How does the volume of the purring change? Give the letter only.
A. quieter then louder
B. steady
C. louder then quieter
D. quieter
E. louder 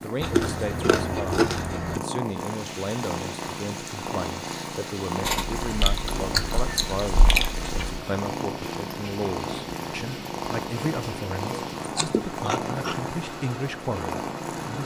B.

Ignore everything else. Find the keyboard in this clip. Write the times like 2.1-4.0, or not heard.
not heard.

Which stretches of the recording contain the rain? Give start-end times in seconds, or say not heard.
2.2-14.8.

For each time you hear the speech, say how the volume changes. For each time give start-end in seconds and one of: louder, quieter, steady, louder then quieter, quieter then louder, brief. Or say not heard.
0.0-14.8 steady.